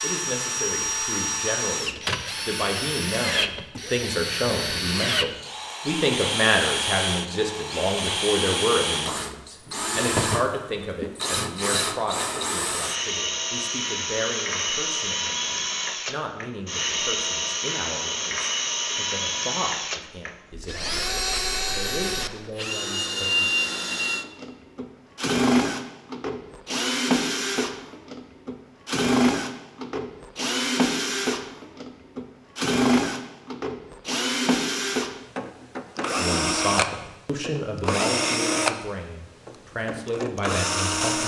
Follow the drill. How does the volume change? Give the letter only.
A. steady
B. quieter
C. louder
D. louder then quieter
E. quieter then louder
A.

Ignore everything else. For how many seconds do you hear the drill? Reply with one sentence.
The drill can be heard for 41 seconds in total.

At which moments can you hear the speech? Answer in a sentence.
The speech can be heard from 0.0 to 23.5 s and from 36.1 to 41.2 s.